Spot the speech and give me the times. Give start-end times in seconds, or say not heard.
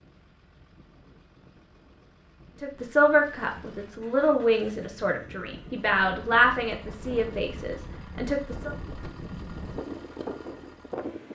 2.6-8.7.